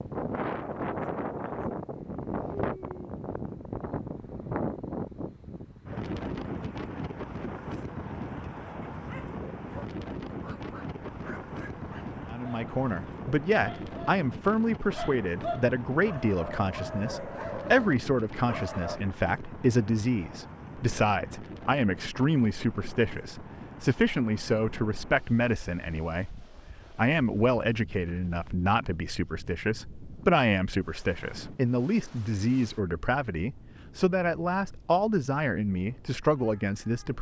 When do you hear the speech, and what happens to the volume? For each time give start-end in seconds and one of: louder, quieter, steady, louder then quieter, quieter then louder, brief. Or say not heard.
12.3-37.1 steady.